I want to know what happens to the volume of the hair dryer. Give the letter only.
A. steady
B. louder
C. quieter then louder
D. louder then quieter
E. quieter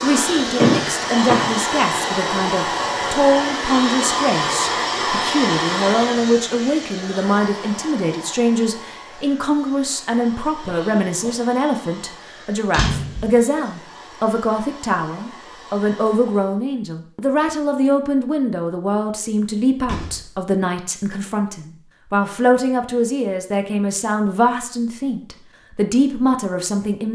E.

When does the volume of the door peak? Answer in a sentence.
The volume of the door peaks at 1 second.